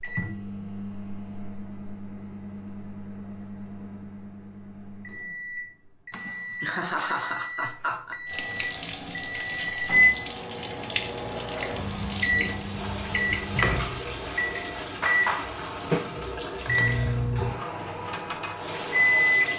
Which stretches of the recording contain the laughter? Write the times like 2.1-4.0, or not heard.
6.1-8.2.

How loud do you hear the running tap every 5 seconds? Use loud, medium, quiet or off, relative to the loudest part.
off, loud, loud, loud.